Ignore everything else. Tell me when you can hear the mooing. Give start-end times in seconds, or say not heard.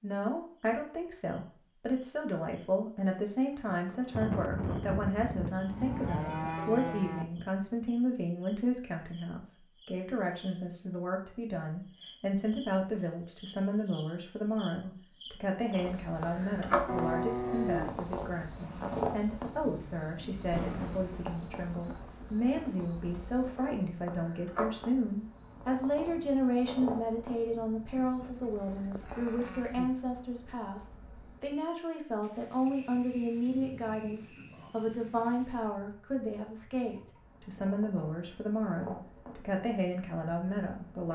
5.6-7.2, 16.9-18.0, 28.0-29.9.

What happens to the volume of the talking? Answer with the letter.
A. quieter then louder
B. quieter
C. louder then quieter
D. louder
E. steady
E.